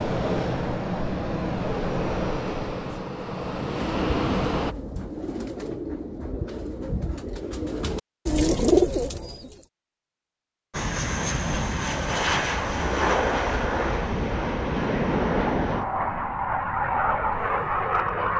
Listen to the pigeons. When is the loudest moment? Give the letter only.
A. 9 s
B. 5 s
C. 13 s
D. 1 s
A.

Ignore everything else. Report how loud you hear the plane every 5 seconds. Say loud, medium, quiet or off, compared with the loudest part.
loud, off, loud, loud.